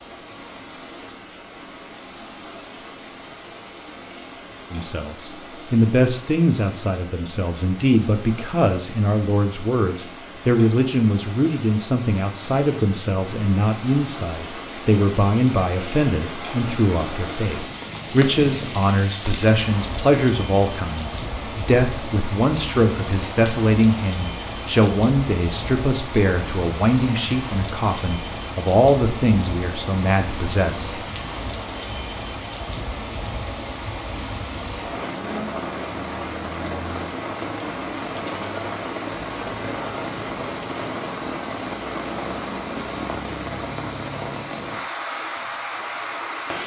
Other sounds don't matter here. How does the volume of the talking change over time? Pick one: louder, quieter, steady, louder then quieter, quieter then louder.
steady.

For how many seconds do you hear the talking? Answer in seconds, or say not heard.
26 s.